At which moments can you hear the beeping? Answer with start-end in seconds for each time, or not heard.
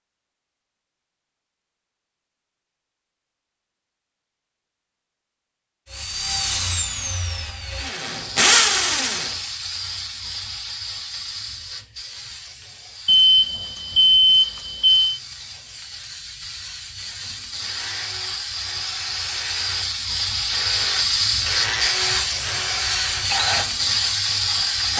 13.1-15.2.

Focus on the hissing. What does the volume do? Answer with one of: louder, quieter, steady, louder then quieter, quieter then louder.
quieter then louder.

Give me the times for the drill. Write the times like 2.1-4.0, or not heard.
5.9-9.3, 17.6-24.9.